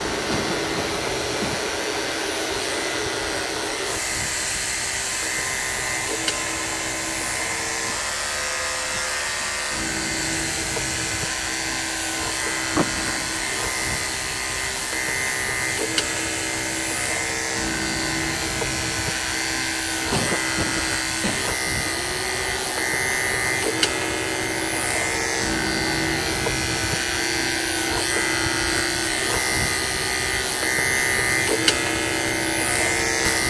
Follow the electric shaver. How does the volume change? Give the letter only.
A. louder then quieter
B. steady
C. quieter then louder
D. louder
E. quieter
D.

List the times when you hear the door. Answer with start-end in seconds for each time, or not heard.
12.8-13.6.